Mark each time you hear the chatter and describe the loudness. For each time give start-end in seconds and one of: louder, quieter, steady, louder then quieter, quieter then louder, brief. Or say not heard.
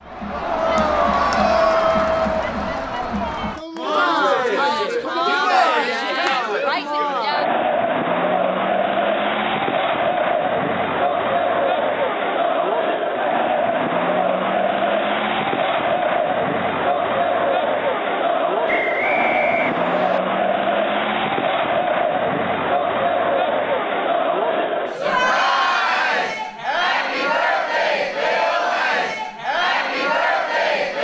0.0-30.9 steady.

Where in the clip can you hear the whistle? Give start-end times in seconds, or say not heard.
18.6-20.2.